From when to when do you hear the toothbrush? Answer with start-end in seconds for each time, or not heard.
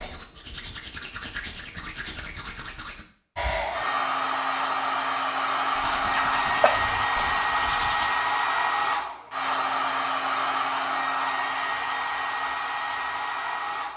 0.0-3.0, 5.7-8.1.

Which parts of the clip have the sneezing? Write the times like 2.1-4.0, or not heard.
6.2-6.8.